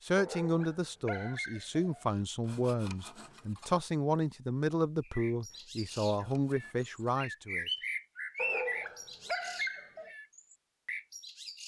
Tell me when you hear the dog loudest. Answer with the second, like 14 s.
9 s.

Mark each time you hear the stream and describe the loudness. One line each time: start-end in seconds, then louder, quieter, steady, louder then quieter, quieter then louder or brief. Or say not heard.
not heard.